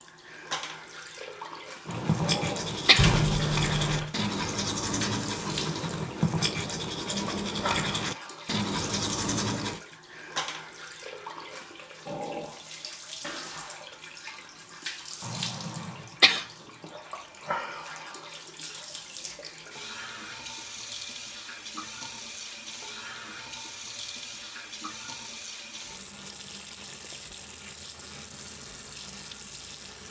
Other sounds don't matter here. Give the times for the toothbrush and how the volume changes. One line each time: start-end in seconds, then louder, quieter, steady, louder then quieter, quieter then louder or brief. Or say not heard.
1.9-9.8 steady.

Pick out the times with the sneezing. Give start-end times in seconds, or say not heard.
1.9-3.1, 15.2-16.4.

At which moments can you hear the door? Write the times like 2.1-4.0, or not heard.
3.0-4.1.